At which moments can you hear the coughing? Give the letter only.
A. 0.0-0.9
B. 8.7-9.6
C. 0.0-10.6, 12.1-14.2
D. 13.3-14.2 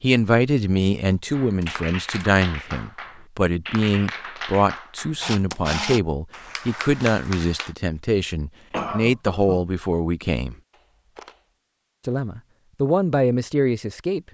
B.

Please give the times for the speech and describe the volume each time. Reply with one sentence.
The speech can be heard from 0.0 to 10.6 s, at a steady volume; and briefly from 12.1 to 14.2 s.